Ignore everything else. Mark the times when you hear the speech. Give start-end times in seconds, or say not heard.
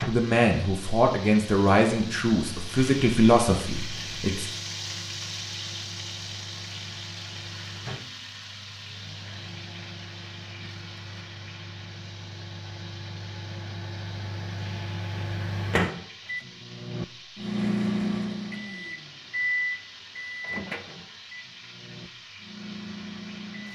0.1-4.5.